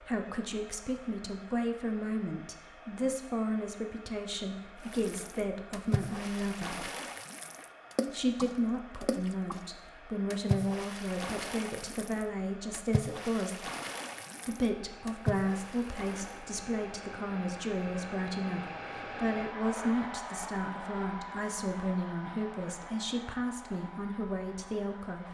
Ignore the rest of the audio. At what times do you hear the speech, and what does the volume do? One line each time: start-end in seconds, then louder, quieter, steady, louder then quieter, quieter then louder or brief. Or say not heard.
0.0-6.9 steady
8.1-13.7 steady
14.4-25.2 steady.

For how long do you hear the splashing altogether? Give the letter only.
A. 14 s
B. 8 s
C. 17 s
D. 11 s
D.